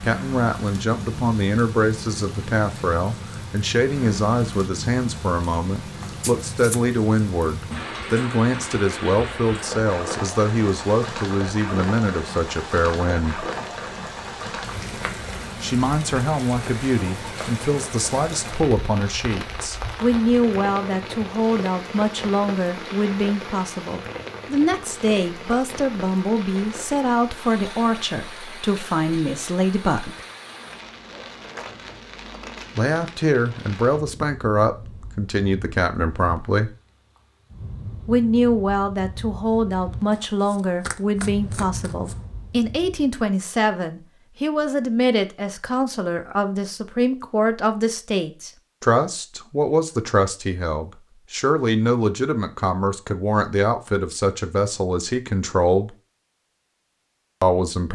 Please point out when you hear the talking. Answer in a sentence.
You can hear the talking from 0.0 to 13.4 s, from 15.6 to 30.2 s, from 32.8 to 36.8 s, from 38.0 to 55.9 s and from 57.4 to 57.9 s.